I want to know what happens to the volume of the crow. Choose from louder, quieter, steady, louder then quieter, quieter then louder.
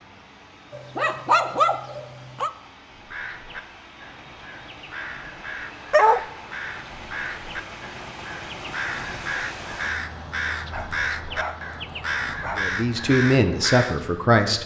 louder.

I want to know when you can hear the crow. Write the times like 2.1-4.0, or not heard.
2.9-14.0.